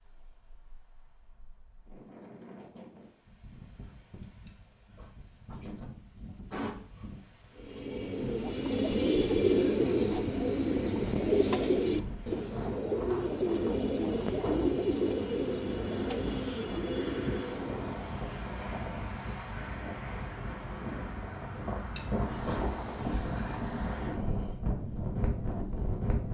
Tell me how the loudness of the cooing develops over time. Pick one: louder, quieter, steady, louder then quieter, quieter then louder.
quieter.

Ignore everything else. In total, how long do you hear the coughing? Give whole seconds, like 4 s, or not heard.
3 s.